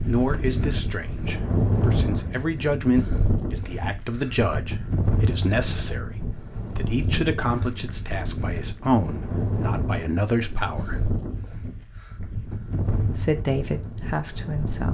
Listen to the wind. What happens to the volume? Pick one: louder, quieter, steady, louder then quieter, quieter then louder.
quieter.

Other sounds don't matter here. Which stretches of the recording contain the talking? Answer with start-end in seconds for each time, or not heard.
0.0-11.0, 12.9-14.8.